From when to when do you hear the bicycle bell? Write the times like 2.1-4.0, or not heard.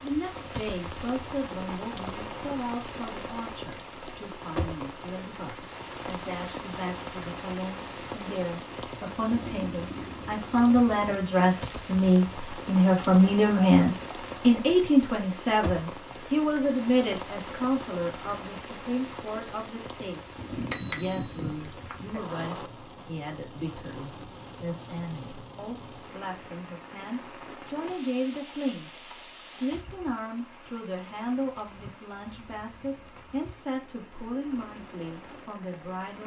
20.5-21.9.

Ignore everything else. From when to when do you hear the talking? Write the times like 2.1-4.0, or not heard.
0.0-36.2.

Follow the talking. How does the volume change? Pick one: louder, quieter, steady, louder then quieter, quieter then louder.
louder then quieter.